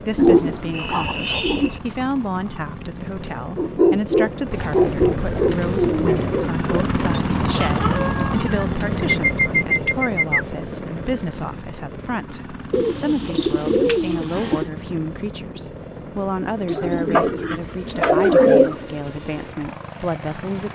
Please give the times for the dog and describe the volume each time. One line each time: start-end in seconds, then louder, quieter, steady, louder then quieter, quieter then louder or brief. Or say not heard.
3.5-8.7 quieter.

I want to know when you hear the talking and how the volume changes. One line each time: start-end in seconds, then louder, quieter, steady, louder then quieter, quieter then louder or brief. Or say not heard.
0.0-20.7 steady.